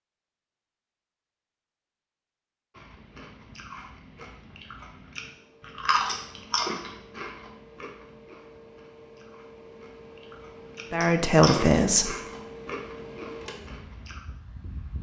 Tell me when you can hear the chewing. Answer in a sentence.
You can hear the chewing from 2.8 to 14.2 s.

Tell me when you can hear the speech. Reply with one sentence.
The speech can be heard from 10.9 to 12.2 s.